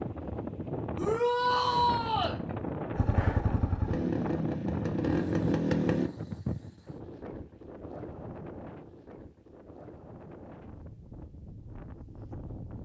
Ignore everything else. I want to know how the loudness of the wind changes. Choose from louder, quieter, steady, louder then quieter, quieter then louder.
quieter.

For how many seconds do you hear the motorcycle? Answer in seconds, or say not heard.
3 s.